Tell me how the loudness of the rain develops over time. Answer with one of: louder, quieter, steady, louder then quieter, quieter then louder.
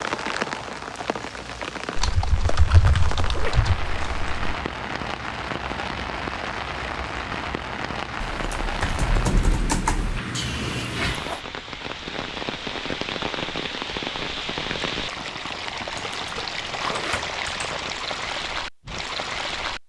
steady.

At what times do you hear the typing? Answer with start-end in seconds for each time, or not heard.
1.9-4.3, 8.2-10.2, 16.1-17.8.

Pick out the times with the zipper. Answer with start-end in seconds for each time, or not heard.
3.3-3.7, 10.3-11.4, 16.8-17.4.